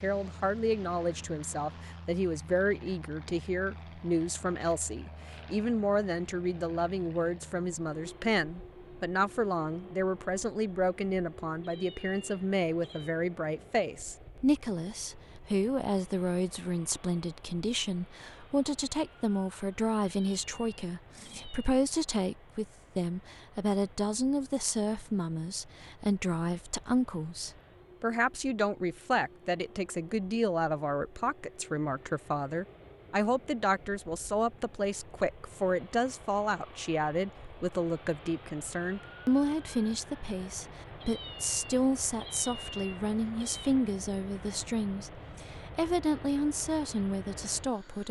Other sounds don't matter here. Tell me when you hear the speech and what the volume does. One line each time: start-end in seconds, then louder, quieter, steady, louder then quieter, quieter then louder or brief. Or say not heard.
0.0-48.0 steady.